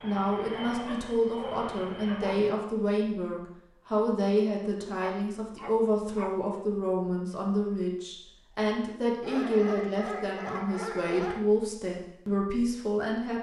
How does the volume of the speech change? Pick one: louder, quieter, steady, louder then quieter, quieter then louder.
steady.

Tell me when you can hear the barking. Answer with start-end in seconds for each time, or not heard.
0.7-2.5, 5.0-6.3, 9.2-11.4.